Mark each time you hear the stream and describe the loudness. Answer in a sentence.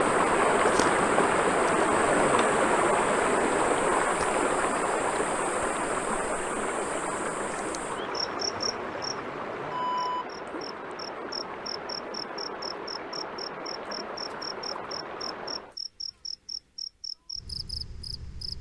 You can hear the stream from 0.0 to 15.8 s, getting quieter.